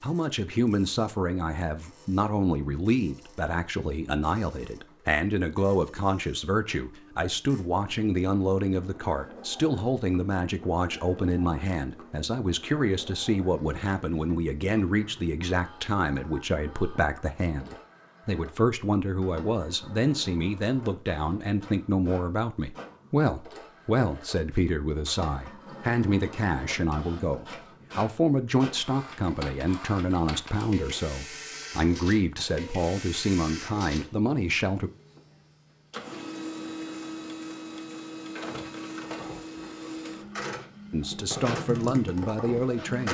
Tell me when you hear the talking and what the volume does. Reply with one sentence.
The talking can be heard from 0.0 to 34.9 s, at a steady volume; and briefly from 40.9 to 43.0 s.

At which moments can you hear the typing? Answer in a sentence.
The typing can be heard from 38.9 to 42.9 s.